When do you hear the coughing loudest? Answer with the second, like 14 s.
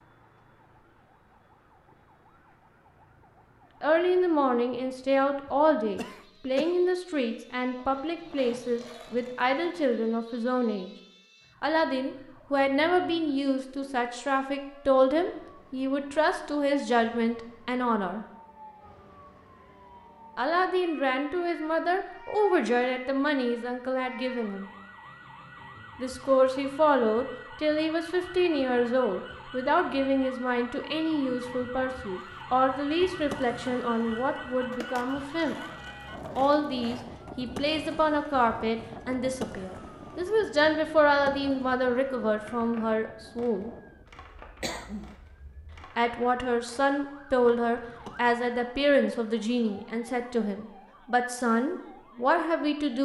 45 s.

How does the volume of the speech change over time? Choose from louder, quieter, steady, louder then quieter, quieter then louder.
steady.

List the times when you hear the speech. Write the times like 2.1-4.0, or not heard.
3.8-10.9, 11.6-18.2, 20.4-24.7, 25.9-35.5, 36.4-43.7, 46.0-53.0.